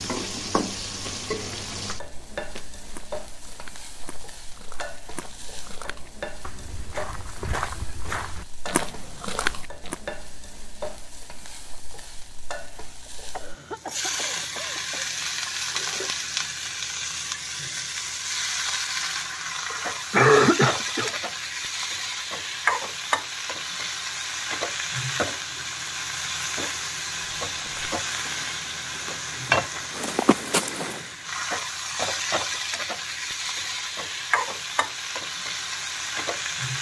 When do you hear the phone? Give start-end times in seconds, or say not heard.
not heard.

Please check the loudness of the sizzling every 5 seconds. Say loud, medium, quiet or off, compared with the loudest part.
medium, quiet, medium, loud, loud, loud, loud, loud.